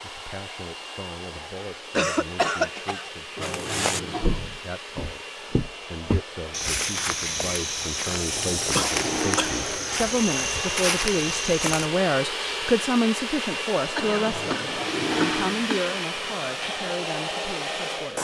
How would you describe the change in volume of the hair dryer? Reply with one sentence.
The volume of the hair dryer goes up.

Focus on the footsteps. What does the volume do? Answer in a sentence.
The loudness of the footsteps stays about the same.